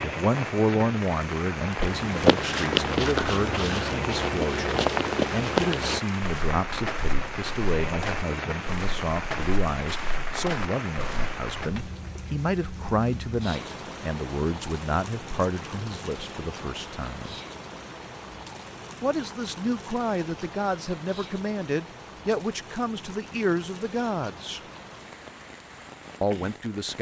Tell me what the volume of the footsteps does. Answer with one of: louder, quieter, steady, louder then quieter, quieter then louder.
quieter.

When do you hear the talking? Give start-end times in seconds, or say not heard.
0.0-17.4, 19.0-24.6, 26.2-26.9.